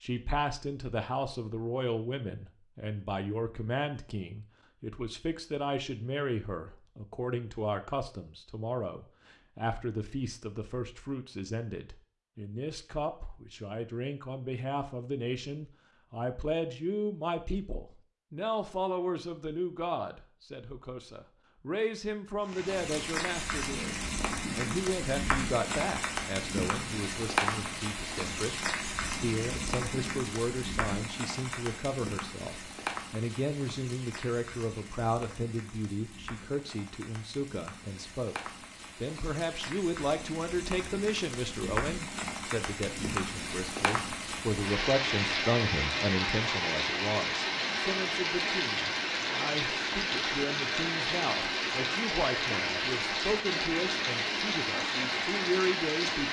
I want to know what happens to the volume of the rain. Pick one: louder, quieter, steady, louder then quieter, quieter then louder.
quieter then louder.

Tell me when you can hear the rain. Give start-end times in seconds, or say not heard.
22.4-56.2.